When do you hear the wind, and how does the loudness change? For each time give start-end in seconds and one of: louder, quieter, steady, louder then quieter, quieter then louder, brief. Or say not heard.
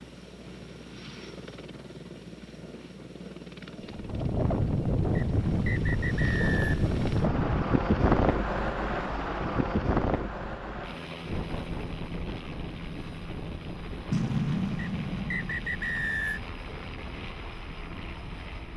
3.9-18.7 quieter.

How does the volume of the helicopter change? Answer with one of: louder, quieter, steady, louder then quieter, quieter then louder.
louder then quieter.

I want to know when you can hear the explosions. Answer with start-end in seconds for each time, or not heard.
14.1-16.2.